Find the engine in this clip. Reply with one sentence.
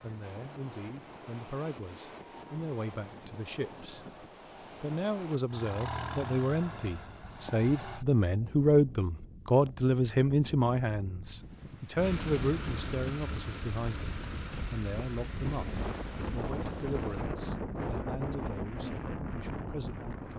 You can hear the engine from 5.5 to 8.1 s and from 11.9 to 17.3 s.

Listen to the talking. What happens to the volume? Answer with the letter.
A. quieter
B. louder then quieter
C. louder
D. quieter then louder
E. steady
B.